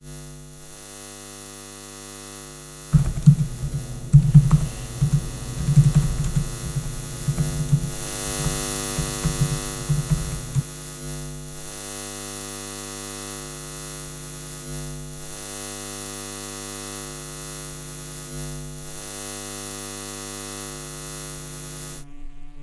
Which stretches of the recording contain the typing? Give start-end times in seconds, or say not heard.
2.9-10.7.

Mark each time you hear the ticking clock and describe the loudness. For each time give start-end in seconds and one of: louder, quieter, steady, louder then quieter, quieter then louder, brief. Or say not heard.
not heard.